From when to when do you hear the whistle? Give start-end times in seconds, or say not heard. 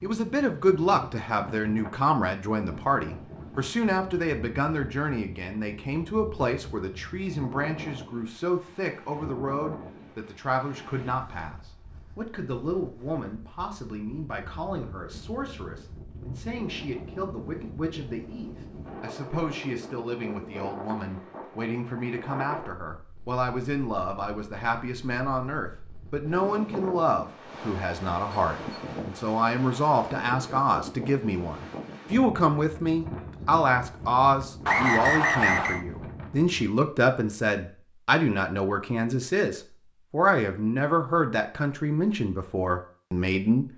34.6-35.9.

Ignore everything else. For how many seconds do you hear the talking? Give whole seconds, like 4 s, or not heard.
44 s.